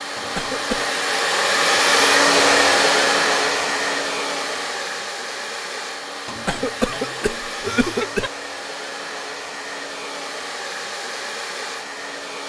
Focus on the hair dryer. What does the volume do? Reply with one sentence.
The volume of the hair dryer goes down.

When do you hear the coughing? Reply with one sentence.
You can hear the coughing from 0.1 to 0.9 s and from 6.2 to 8.3 s.